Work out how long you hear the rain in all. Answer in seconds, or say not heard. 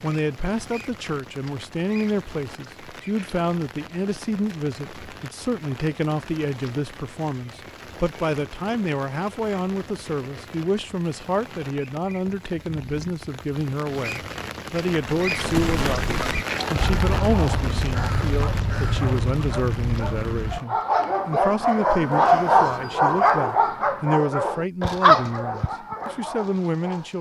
21 s.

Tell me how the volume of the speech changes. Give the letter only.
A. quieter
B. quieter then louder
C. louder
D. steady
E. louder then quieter
D.